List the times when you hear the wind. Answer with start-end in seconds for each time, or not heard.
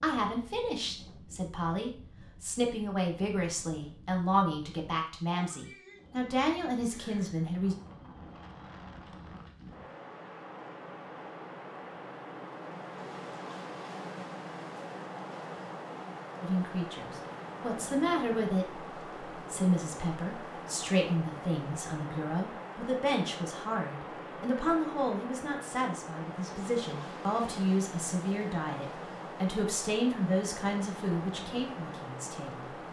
0.0-32.8.